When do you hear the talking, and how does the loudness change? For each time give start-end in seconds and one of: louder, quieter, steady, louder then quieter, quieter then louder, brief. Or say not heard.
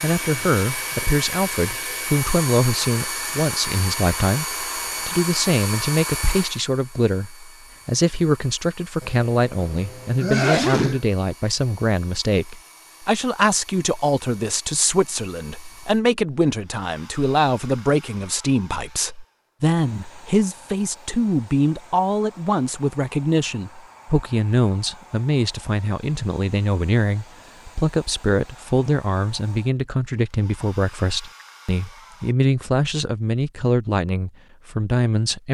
0.0-35.4 steady.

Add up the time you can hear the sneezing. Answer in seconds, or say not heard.
2 s.